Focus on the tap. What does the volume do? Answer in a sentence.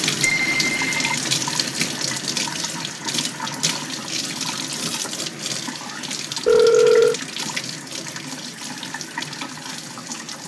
The volume of the tap goes down.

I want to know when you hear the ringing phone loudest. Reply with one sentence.
The volume of the ringing phone peaks at 7 seconds.